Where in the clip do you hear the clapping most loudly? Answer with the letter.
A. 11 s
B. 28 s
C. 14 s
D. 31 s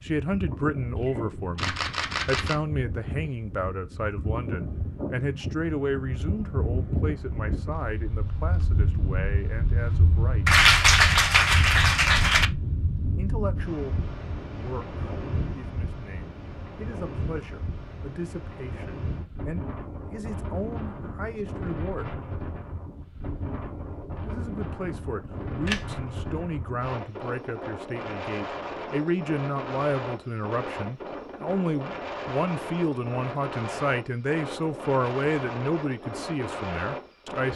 A.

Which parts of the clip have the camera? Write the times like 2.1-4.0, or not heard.
0.9-2.5, 25.6-26.4.